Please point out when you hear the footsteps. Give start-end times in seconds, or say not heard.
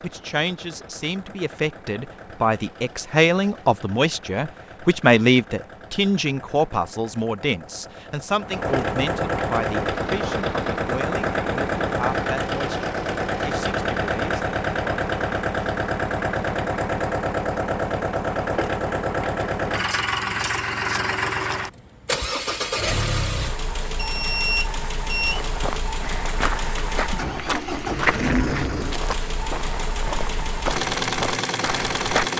25.2-32.3.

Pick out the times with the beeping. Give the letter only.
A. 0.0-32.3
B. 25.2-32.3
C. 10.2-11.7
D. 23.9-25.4
D.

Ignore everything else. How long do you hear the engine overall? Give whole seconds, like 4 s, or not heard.
32 s.